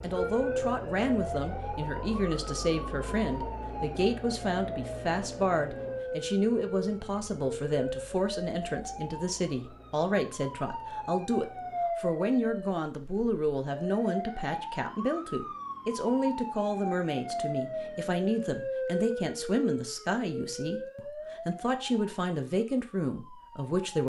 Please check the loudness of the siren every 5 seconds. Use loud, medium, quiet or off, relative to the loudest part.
loud, loud, loud, loud, medium.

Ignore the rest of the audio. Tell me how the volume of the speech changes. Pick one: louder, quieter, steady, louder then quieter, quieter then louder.
steady.